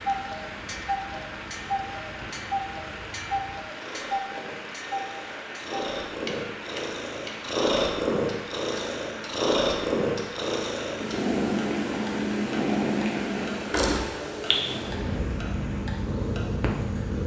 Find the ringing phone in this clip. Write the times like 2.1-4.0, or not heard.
14.5-15.3.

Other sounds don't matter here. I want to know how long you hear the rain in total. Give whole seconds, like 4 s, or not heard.
17 s.